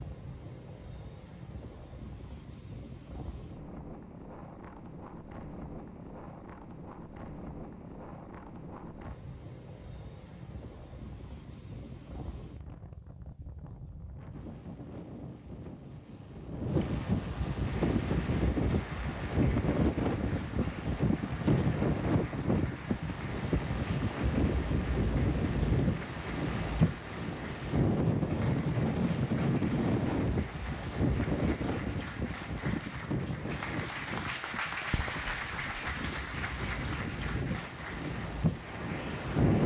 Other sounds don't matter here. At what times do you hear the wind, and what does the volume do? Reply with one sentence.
You can hear the wind from 0.0 to 39.6 s, getting louder then quieter.